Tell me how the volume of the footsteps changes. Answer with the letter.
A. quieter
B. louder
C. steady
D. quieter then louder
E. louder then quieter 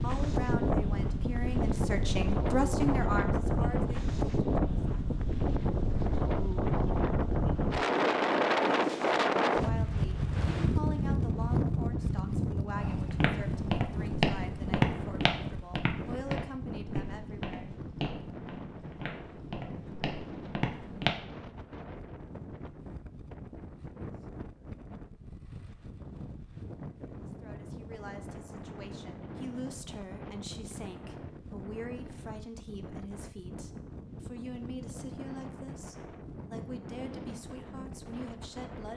A.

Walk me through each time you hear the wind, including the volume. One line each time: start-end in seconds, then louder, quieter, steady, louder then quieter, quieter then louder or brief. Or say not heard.
0.0-38.9 quieter.